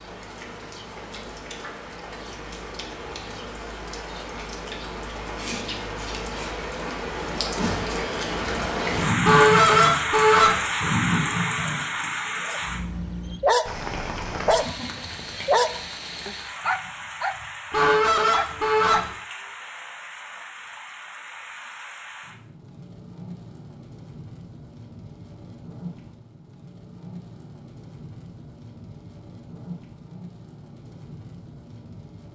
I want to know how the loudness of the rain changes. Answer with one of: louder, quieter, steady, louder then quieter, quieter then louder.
louder then quieter.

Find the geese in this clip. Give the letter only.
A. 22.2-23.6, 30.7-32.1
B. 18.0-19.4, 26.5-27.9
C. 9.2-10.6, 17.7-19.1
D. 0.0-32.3
C.